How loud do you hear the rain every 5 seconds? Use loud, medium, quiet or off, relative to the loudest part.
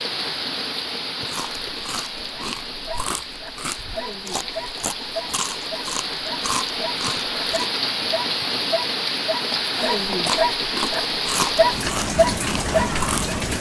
medium, loud, loud.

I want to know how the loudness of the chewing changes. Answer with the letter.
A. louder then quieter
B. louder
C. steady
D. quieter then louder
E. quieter
B.